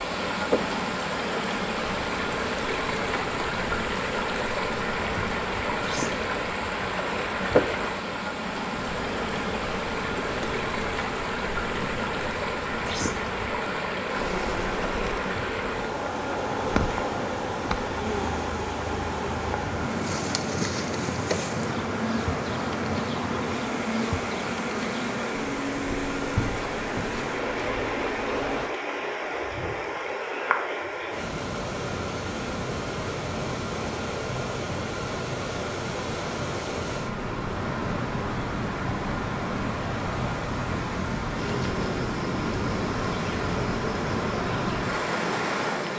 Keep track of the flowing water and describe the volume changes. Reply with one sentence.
The volume of the flowing water stays about the same.